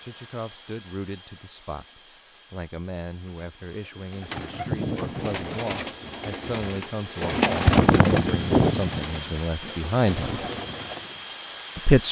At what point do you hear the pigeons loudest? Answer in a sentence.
The volume of the pigeons peaks at 8 seconds.